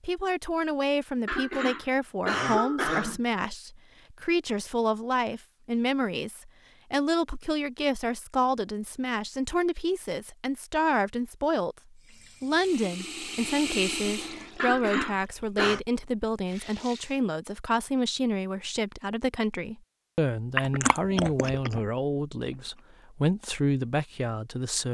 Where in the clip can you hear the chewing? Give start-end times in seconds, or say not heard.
20.6-22.9.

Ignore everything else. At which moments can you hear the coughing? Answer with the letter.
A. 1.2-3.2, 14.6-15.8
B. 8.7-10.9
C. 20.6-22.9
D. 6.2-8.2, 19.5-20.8
A.